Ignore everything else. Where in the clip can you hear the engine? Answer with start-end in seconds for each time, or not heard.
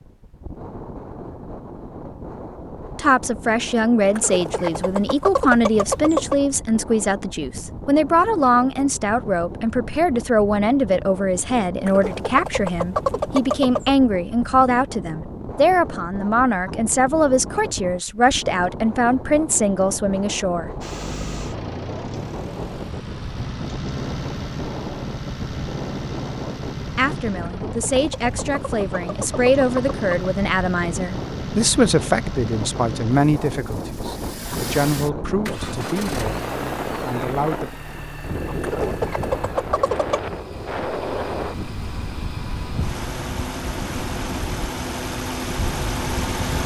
20.8-46.6.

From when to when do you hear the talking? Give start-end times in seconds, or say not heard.
3.0-20.7, 26.9-37.7.